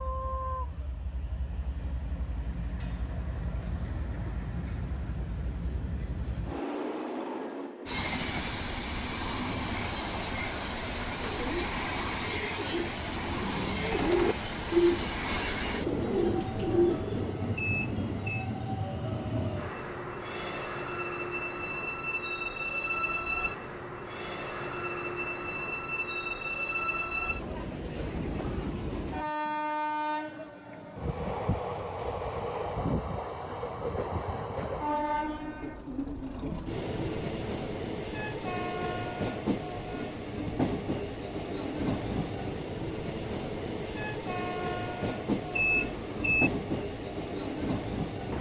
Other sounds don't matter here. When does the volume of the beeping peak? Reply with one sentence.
The volume of the beeping peaks at 46 seconds.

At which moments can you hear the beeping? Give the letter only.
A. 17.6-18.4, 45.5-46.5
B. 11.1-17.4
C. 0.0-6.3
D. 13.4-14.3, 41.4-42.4
A.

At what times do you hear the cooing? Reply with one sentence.
You can hear the cooing from 11.1 to 17.4 s.